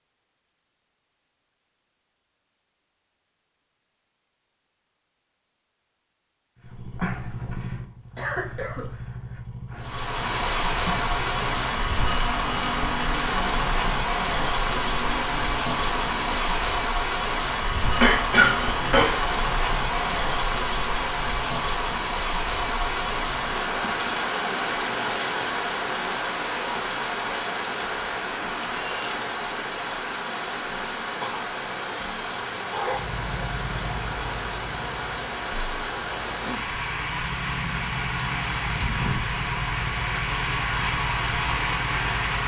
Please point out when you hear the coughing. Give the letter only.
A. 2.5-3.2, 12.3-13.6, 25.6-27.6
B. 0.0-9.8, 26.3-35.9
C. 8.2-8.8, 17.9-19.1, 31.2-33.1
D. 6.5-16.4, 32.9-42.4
C.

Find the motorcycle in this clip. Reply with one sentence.
The motorcycle can be heard from 6.5 to 16.4 s and from 32.9 to 42.4 s.